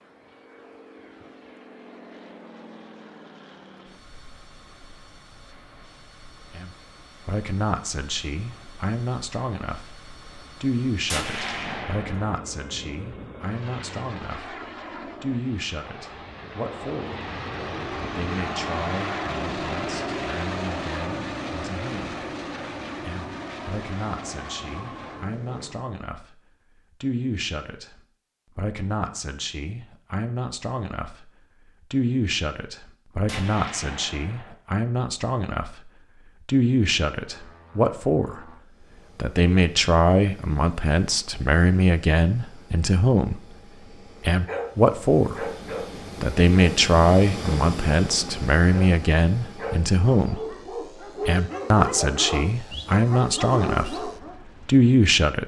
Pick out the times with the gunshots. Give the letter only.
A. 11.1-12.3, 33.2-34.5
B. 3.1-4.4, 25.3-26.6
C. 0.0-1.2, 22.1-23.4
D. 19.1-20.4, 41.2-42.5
A.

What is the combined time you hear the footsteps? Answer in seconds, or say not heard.
not heard.